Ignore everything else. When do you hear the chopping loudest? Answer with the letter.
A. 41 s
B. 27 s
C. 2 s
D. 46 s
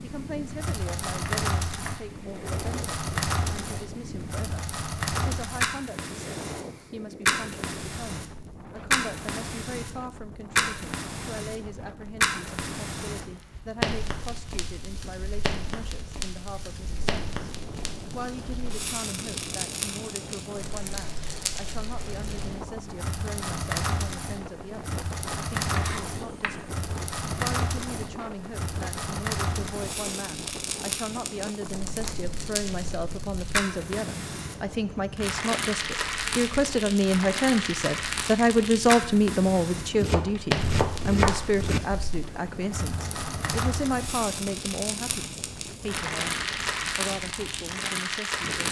A.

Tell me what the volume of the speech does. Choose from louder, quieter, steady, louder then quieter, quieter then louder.
louder.